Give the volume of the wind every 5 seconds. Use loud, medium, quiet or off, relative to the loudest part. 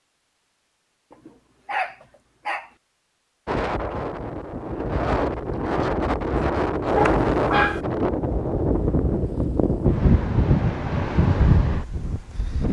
medium, loud, loud.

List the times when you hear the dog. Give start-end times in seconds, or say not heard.
1.1-2.7, 6.8-7.8.